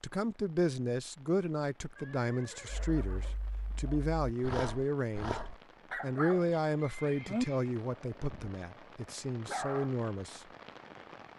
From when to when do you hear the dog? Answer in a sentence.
You can hear the dog from 2.6 to 6.5 s, from 7.2 to 8.6 s and from 9.4 to 9.9 s.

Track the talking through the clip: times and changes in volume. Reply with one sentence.
You can hear the talking from 0.0 to 5.3 s, at a steady volume; and from 6.0 to 10.4 s, getting quieter then louder.